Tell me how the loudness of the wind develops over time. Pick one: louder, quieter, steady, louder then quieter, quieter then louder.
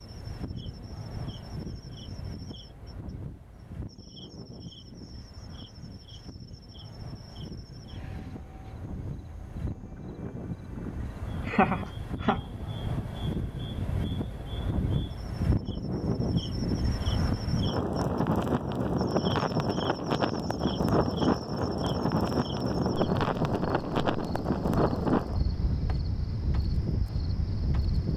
louder.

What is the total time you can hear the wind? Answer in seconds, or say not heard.
28 s.